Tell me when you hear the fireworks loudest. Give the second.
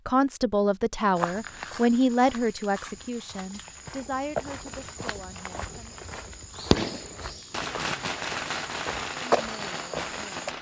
7 s.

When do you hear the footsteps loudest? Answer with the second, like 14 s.
9 s.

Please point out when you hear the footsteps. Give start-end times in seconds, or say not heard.
1.1-10.5.